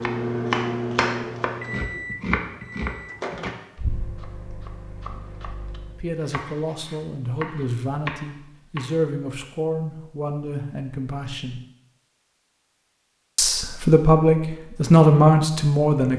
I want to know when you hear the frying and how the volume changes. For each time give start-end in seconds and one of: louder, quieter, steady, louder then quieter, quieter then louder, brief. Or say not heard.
not heard.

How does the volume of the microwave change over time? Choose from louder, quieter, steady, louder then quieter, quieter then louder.
quieter.